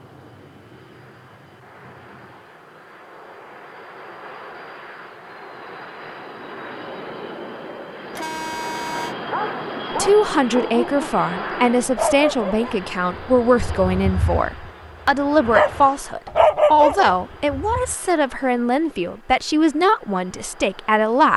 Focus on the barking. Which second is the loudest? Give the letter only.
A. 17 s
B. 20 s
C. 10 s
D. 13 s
A.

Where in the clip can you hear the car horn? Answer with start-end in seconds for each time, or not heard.
8.1-9.2.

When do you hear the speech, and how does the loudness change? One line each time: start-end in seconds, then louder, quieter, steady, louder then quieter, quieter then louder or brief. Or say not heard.
9.9-21.3 steady.